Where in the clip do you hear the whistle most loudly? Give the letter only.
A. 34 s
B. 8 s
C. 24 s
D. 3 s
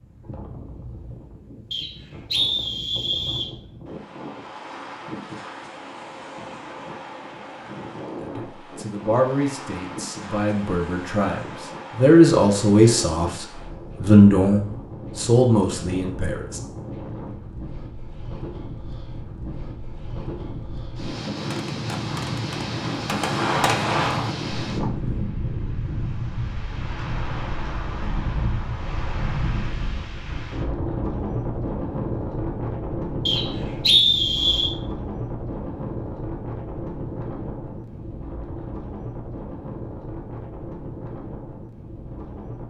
A.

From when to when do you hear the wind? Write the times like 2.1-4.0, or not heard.
0.0-42.6.